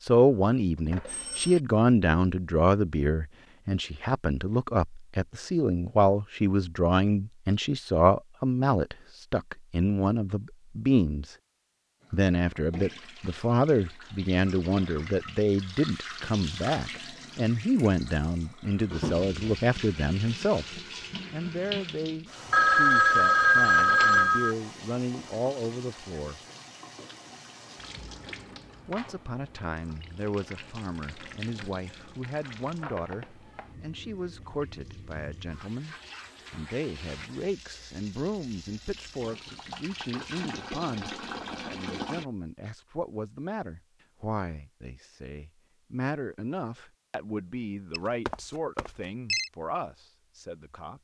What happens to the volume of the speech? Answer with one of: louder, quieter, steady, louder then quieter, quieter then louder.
quieter.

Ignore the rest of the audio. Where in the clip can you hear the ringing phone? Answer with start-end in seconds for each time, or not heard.
0.9-1.6, 22.5-24.6, 47.9-49.5.